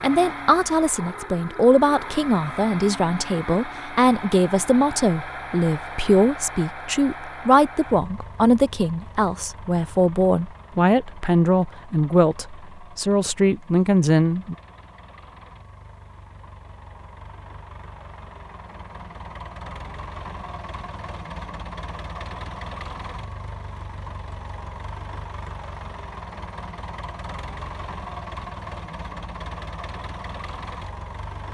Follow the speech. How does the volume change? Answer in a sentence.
The volume of the speech stays about the same.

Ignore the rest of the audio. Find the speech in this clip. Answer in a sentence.
You can hear the speech from 0.0 to 14.6 s.